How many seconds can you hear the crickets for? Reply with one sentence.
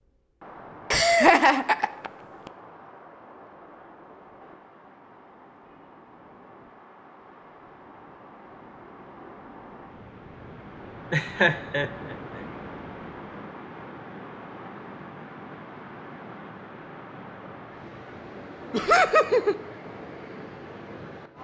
The crickets can't be heard in this clip.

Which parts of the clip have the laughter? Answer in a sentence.
The laughter can be heard from 0.9 to 2.5 s, from 11.1 to 12.4 s and from 18.7 to 19.6 s.